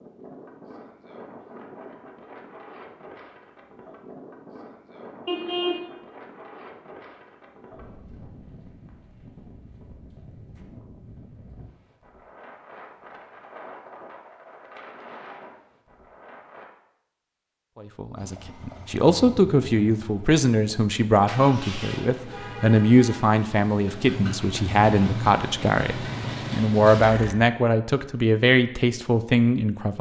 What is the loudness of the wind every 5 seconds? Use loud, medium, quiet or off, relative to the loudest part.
loud, loud, loud, loud, off, off.